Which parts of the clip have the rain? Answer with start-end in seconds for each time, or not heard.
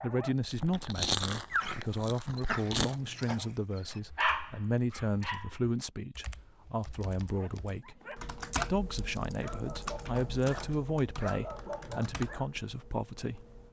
not heard.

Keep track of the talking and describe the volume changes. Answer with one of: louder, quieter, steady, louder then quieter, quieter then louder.
steady.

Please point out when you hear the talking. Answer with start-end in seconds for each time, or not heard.
0.0-8.0, 8.7-13.4.